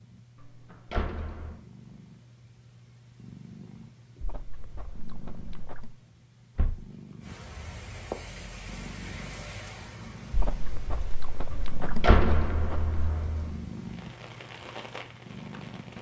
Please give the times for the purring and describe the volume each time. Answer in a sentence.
You can hear the purring from 0.0 to 15.9 s, getting louder.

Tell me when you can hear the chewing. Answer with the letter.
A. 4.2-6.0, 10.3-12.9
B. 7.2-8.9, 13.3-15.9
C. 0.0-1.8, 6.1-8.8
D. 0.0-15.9
A.